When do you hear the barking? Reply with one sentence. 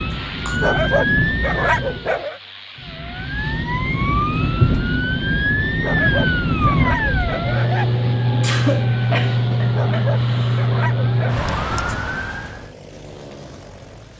You can hear the barking from 0.6 to 2.4 s, from 5.8 to 7.9 s and from 9.7 to 11.5 s.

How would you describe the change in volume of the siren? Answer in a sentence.
The loudness of the siren stays about the same.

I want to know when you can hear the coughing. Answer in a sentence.
You can hear the coughing from 0.1 to 0.8 s and from 8.4 to 10.7 s.